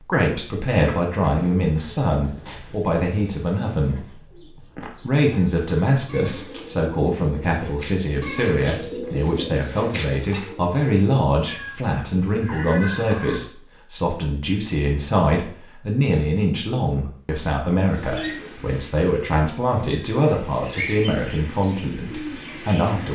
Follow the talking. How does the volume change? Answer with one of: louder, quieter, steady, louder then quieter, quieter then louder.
steady.